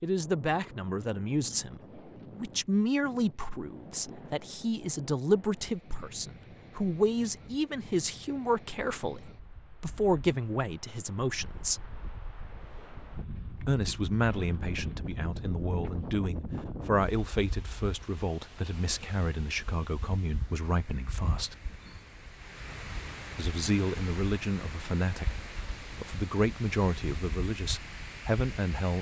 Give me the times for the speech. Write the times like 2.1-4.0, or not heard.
0.0-11.8, 13.7-21.6, 23.4-28.9.